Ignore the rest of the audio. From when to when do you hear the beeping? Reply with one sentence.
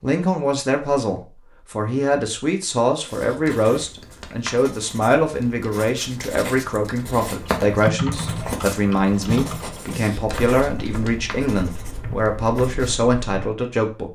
The beeping can't be heard in this clip.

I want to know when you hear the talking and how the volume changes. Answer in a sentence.
You can hear the talking from 0.0 to 14.0 s, at a steady volume.